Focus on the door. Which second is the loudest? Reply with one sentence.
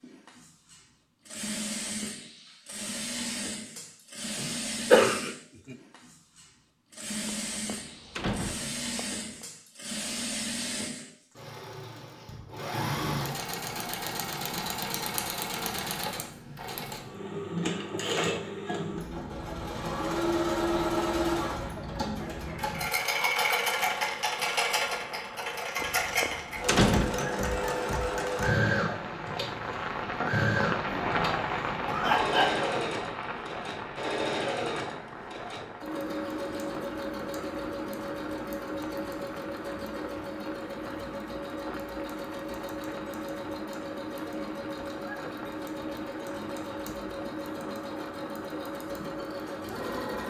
The volume of the door peaks at 27 seconds.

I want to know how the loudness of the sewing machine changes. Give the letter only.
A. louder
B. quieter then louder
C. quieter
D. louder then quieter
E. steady
D.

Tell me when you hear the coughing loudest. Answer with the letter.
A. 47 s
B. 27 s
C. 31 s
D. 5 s
D.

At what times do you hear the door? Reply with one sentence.
You can hear the door from 7.5 to 9.4 s and from 25.8 to 27.3 s.